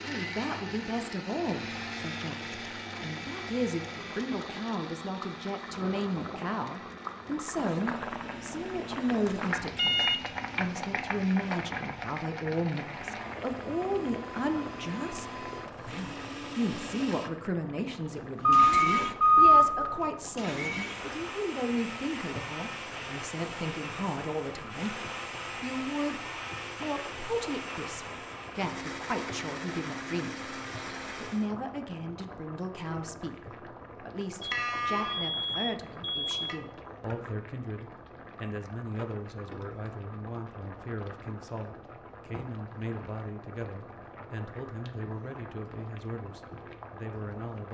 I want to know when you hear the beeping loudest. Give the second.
19 s.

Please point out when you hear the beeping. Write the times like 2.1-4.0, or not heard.
9.8-10.2, 18.4-20.1, 34.4-36.6.